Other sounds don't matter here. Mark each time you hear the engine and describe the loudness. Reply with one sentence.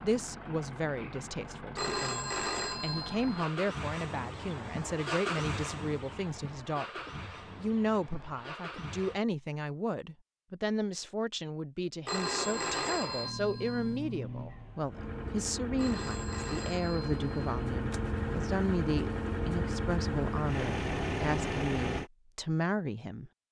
The engine can be heard from 0.0 to 9.2 s, getting louder then quieter; and from 12.3 to 22.1 s, getting louder.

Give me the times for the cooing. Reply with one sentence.
The cooing can't be heard in this clip.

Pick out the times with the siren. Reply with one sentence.
The siren can't be heard in this clip.